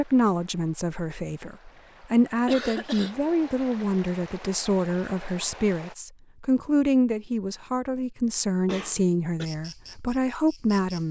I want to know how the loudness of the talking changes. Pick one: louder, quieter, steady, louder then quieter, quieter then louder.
steady.